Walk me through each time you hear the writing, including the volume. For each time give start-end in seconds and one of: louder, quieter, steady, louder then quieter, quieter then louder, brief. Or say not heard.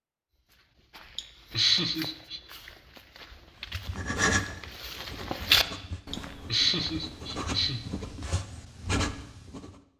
3.7-9.8 quieter then louder.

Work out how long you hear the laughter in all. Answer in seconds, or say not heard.
3 s.